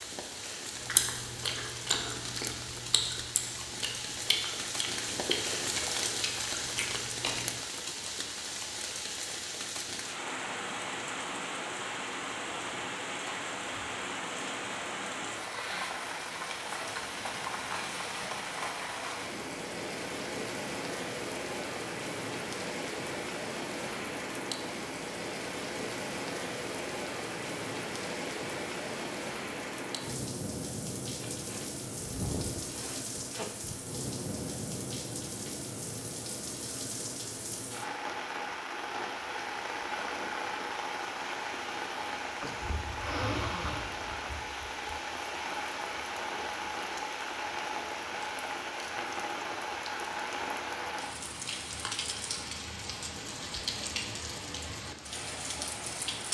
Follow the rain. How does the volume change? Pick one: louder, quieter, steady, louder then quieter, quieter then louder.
steady.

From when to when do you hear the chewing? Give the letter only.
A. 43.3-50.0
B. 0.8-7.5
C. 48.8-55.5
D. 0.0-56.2
B.